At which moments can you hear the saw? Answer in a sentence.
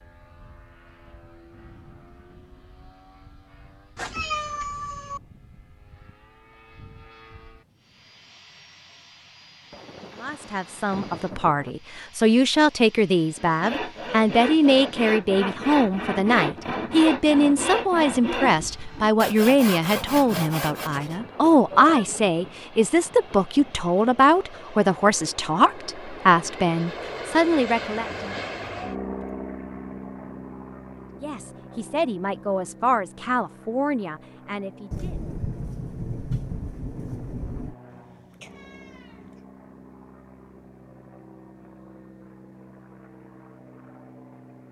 You can hear the saw from 13.3 to 21.2 s.